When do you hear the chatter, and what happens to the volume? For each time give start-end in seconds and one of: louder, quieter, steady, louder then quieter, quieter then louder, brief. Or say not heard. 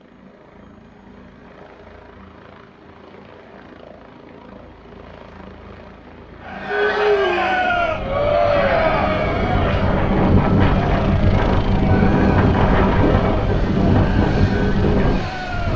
6.4-15.7 quieter.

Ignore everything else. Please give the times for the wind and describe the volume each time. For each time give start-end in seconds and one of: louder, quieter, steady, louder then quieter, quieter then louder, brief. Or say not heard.
7.7-15.7 louder.